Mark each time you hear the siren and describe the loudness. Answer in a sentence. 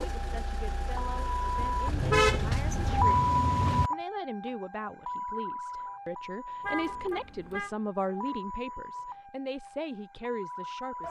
The siren can be heard from 0.0 to 11.0 s, getting louder then quieter.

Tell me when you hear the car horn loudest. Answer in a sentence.
The loudest moment of the car horn is at 2 seconds.